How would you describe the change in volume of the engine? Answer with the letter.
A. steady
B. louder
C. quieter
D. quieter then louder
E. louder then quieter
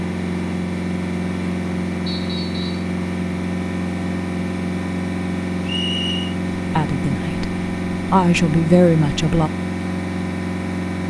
A.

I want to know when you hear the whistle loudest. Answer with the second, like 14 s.
6 s.